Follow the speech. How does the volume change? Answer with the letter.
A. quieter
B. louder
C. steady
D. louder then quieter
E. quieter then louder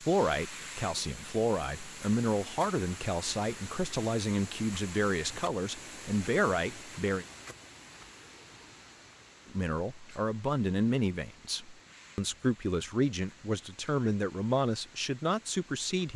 C.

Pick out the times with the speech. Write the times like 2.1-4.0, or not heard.
0.0-7.2, 9.5-16.1.